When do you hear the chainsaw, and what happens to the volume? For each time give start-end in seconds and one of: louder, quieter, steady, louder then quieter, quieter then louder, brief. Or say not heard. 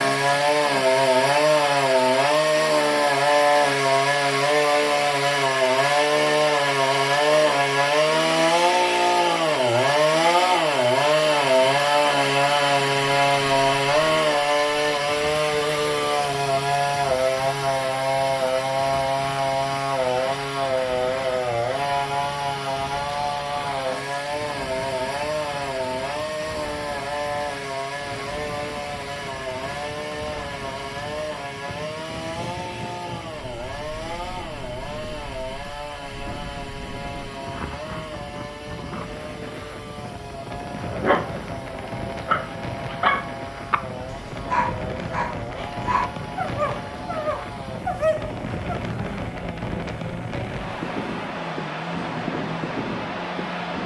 0.0-53.8 quieter.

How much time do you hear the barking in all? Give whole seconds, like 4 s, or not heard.
8 s.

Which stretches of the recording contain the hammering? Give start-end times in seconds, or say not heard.
not heard.